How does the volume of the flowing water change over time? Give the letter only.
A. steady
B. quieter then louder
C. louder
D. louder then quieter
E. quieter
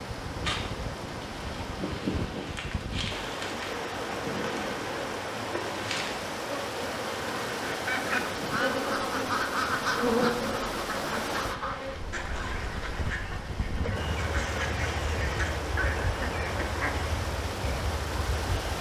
A.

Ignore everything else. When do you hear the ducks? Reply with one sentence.
You can hear the ducks from 7.7 to 17.1 s.